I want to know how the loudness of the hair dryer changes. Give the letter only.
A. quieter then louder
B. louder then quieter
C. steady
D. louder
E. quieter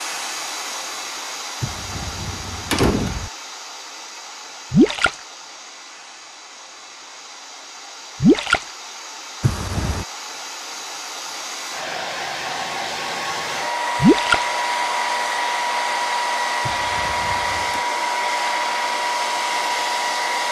A.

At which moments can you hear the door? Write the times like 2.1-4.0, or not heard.
1.6-3.3, 9.4-10.1, 16.6-17.9.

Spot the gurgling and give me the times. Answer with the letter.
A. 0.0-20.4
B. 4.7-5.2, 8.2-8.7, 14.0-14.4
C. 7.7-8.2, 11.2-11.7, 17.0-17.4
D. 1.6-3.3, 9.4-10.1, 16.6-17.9
B.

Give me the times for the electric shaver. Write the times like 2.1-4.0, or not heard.
not heard.